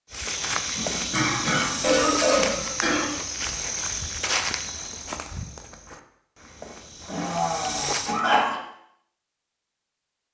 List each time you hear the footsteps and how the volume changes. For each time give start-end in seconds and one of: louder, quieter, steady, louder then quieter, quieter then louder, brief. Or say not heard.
0.1-8.2 quieter.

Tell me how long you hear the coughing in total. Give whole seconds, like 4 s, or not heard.
4 s.